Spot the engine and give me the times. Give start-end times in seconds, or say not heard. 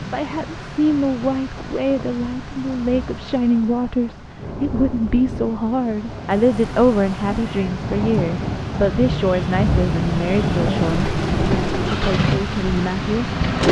10.8-13.6.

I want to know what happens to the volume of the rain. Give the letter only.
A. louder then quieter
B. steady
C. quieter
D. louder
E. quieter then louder
D.